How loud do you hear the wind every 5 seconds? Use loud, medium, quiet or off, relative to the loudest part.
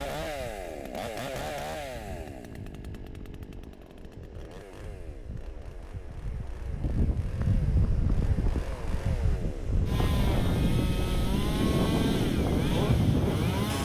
quiet, medium, loud.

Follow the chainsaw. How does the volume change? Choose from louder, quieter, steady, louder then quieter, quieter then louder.
quieter then louder.